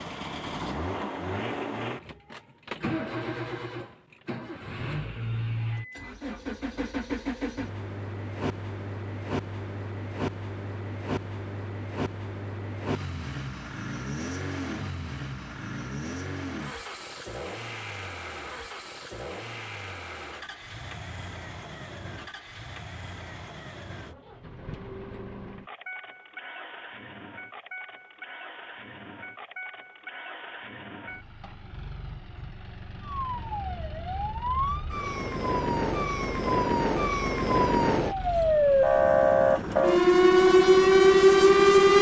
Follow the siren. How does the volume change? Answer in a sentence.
The loudness of the siren goes up.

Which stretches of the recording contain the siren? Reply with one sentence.
You can hear the siren from 32.9 to 41.9 s.